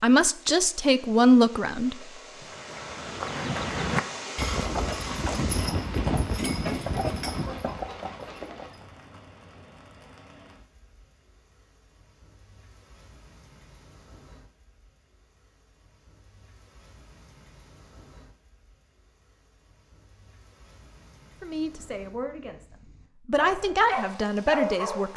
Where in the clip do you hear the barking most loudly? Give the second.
25 s.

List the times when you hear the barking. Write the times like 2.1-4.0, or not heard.
23.4-25.1.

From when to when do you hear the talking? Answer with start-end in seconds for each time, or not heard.
0.0-1.9, 21.4-25.1.